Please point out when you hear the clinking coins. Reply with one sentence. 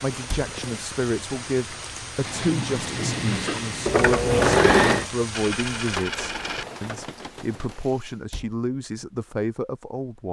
You can hear the clinking coins from 5.3 to 6.7 s.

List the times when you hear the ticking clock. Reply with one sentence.
You can't hear the ticking clock here.